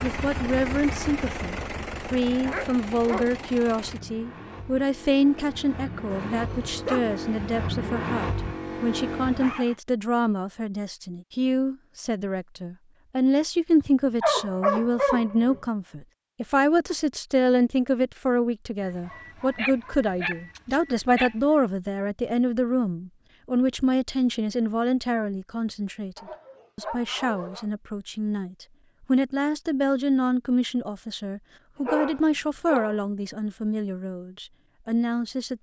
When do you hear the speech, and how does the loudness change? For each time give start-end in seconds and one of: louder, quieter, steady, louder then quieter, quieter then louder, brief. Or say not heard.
0.0-35.5 steady.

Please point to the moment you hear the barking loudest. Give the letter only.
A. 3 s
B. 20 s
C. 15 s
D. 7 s
C.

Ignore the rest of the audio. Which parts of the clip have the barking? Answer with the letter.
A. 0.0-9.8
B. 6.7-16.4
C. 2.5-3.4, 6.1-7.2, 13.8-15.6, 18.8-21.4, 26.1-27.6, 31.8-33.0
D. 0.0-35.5
C.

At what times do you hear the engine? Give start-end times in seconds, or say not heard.
0.0-9.8.